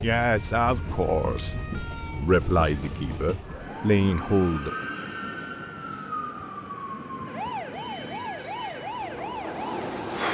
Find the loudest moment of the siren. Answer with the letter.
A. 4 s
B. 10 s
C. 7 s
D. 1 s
B.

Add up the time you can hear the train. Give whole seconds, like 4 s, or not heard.
10 s.